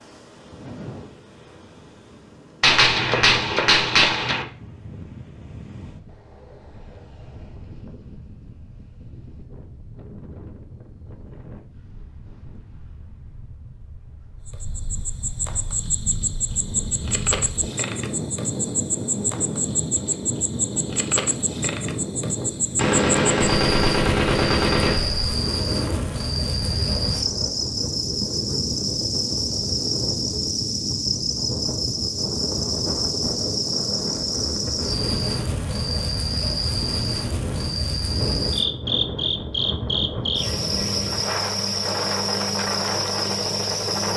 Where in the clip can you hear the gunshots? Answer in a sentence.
You can hear the gunshots from 2.6 to 4.5 s and from 22.8 to 25.3 s.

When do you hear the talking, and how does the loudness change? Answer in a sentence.
You can't hear the talking here.